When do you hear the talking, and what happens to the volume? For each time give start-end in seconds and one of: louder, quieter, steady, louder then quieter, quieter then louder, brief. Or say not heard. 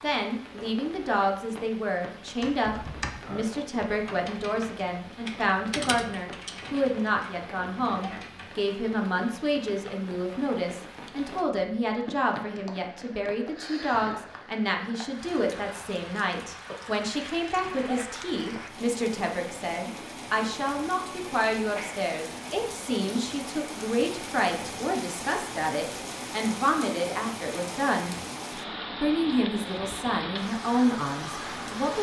0.0-28.1 steady
29.0-31.9 brief.